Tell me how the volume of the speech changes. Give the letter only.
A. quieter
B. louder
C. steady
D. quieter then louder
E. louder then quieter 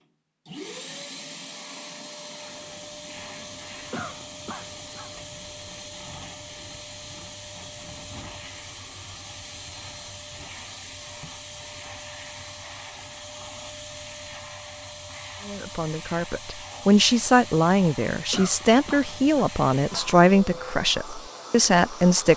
C.